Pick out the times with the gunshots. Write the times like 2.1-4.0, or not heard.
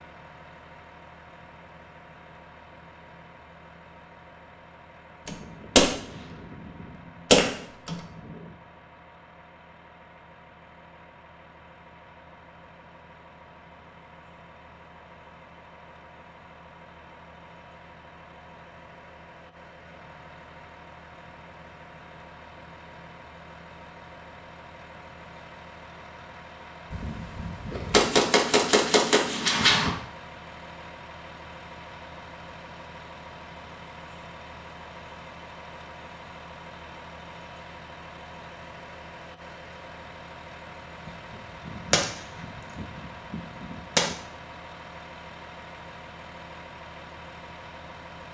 5.2-8.4, 26.9-29.9, 41.0-44.1.